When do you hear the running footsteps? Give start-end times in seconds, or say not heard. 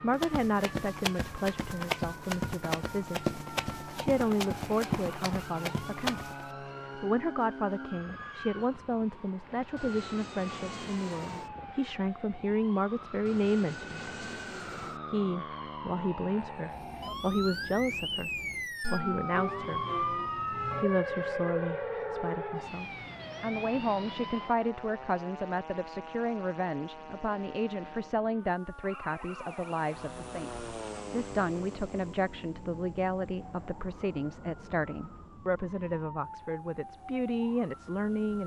0.1-6.5.